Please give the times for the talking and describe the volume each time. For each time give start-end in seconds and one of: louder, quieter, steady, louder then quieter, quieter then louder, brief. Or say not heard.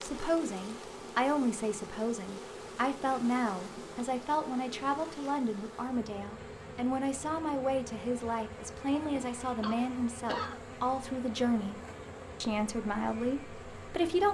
0.0-11.8 steady
12.4-14.3 brief.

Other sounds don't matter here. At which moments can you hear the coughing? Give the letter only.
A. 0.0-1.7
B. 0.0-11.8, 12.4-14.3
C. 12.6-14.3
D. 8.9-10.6
D.